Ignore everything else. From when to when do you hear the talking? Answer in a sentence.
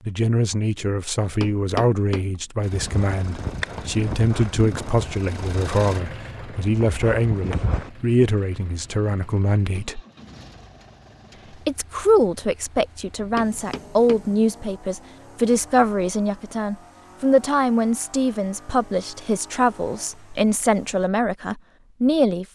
You can hear the talking from 0.1 to 10.0 s and from 11.7 to 22.4 s.